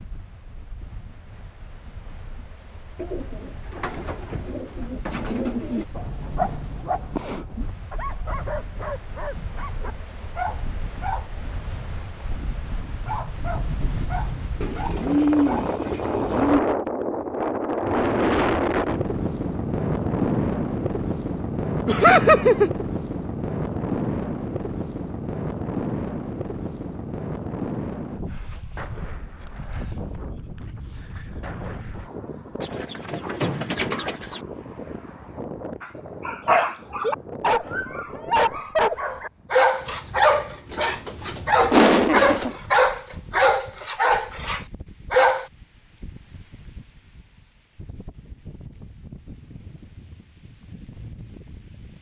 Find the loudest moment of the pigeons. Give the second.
15 s.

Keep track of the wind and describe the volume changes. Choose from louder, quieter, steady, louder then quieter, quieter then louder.
louder then quieter.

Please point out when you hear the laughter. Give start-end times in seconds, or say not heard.
21.9-22.7, 41.7-42.5.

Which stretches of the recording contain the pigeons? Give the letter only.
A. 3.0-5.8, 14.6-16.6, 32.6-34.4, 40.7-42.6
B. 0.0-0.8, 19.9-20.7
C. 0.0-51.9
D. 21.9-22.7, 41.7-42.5
A.